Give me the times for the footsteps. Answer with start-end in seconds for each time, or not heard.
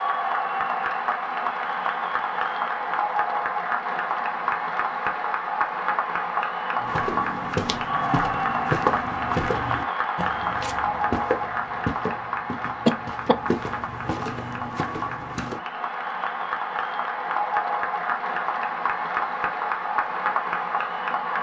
6.8-15.6.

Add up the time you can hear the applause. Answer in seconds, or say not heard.
21 s.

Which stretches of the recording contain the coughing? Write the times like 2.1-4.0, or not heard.
12.8-13.3.